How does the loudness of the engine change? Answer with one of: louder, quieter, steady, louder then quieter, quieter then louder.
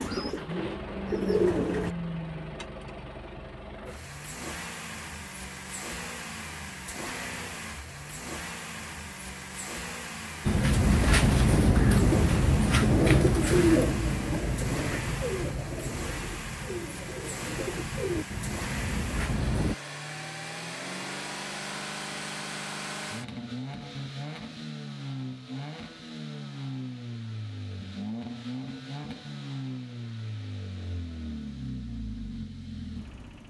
steady.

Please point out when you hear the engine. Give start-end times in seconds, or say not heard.
0.0-33.4.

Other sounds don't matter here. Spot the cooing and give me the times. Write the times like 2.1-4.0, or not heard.
0.0-1.9, 10.4-19.8.